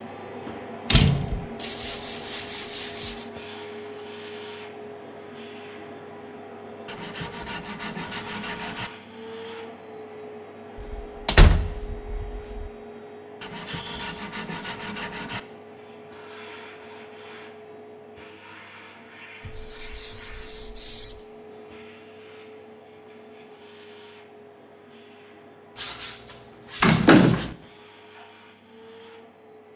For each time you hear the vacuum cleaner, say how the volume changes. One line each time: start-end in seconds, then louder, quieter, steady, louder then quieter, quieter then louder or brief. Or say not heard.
0.0-29.7 quieter.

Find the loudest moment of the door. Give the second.
27 s.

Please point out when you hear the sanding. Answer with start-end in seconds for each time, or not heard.
1.6-3.3, 6.8-8.9, 13.4-15.4, 19.4-21.2, 25.8-27.5.